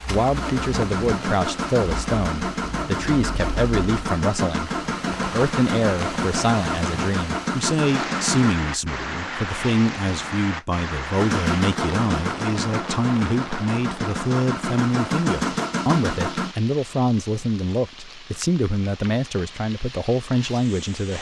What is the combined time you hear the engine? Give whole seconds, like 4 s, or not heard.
14 s.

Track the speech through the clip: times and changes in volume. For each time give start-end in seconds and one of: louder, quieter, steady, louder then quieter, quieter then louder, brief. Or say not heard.
0.1-21.1 steady.